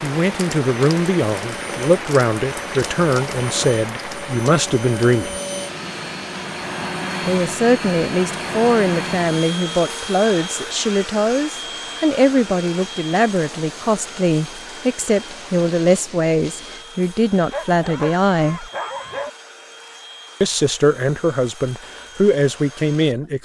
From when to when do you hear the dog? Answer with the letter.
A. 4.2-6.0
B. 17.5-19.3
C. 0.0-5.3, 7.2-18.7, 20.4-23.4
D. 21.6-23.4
B.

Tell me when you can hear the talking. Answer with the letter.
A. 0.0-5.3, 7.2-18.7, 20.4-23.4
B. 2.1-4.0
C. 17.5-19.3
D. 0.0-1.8
A.